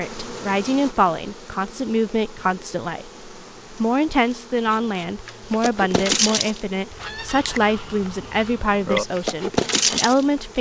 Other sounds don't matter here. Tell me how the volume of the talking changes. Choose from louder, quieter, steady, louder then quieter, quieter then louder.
steady.